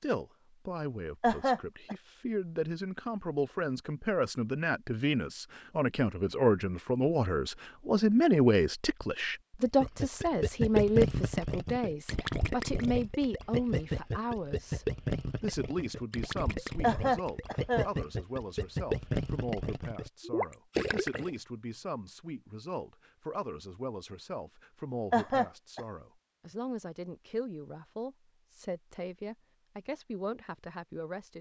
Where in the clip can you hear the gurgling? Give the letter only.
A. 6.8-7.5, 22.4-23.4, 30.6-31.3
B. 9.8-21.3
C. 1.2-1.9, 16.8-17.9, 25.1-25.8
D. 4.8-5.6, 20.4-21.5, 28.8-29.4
B.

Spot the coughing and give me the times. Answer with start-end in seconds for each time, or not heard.
1.2-1.9, 16.8-17.9, 25.1-25.8.